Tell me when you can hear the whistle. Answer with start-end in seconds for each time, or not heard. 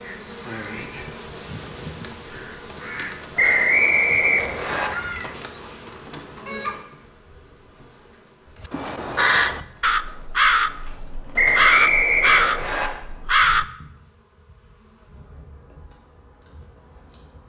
3.4-4.9, 11.3-12.9.